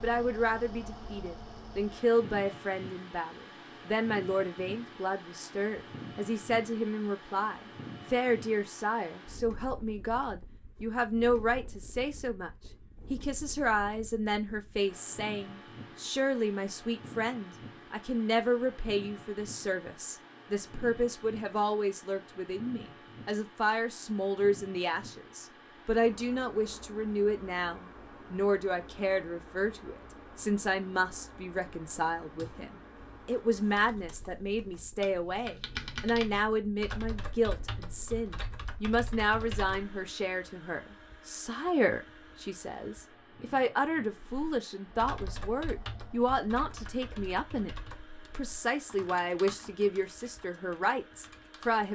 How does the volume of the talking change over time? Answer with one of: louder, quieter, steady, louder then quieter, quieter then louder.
steady.